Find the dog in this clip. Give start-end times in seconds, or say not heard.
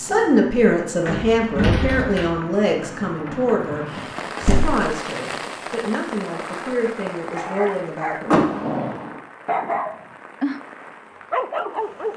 7.2-10.6, 11.3-12.1.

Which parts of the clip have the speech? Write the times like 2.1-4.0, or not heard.
0.0-8.3.